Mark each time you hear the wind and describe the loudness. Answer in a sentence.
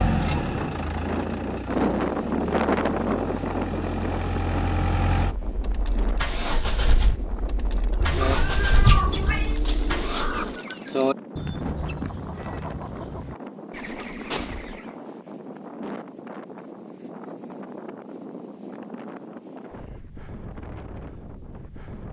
The wind can be heard from 0.2 to 22.0 s, getting quieter.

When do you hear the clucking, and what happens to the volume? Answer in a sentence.
The clucking can be heard from 8.1 to 14.9 s, getting louder then quieter.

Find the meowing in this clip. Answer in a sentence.
You can hear the meowing from 8.0 to 9.6 s.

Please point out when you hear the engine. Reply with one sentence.
You can hear the engine from 0.0 to 10.6 s.